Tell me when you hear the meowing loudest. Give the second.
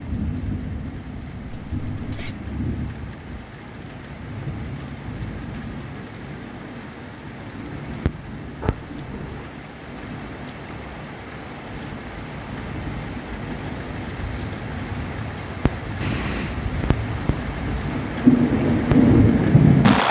16 s.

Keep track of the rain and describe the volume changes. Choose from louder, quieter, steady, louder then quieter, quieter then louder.
louder.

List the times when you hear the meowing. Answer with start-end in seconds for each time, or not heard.
1.6-2.4, 8.6-9.6, 16.0-16.6.